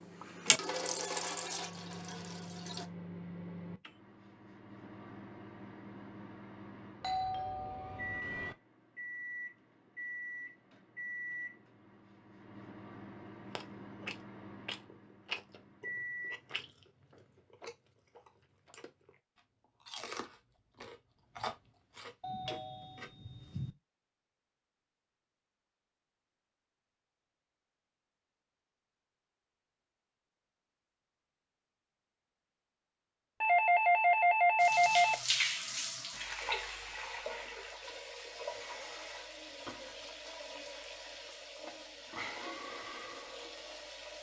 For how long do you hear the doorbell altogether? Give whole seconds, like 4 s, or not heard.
5 s.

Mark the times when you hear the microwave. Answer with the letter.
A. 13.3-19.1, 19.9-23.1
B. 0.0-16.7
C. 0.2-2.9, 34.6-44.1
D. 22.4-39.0
B.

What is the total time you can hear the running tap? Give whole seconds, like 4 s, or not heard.
12 s.